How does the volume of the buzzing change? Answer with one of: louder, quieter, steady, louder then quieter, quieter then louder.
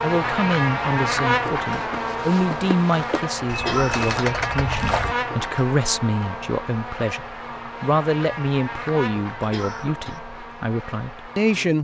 quieter.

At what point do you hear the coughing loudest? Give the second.
4 s.